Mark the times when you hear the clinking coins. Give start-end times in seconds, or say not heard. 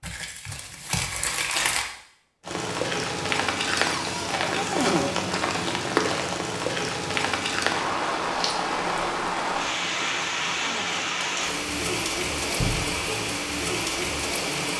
not heard.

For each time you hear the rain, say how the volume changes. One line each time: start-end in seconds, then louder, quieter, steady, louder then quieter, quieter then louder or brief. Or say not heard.
2.5-14.7 steady.